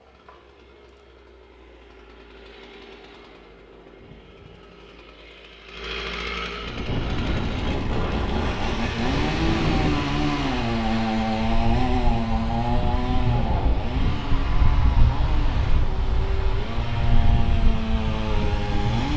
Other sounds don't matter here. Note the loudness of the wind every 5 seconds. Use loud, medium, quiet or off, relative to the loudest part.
off, loud, loud, loud.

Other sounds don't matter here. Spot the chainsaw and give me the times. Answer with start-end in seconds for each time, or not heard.
0.0-19.1.